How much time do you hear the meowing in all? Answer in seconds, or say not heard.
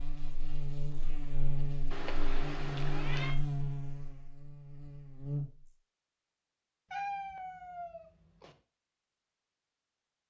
3 s.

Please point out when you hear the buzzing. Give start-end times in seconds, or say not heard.
0.0-5.8.